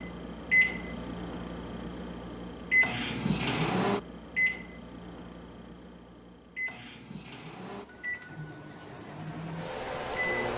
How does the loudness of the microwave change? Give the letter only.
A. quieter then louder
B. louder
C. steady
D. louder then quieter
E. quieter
E.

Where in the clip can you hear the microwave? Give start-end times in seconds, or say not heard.
0.0-10.5.